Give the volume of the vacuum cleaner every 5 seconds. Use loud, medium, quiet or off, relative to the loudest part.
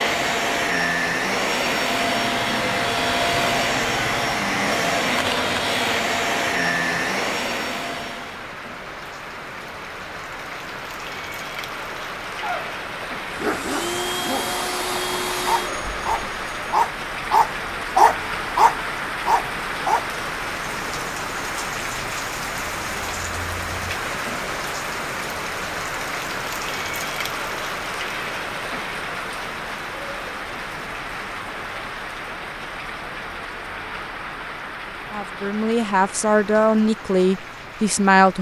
loud, loud, medium, medium, off, off, off, off.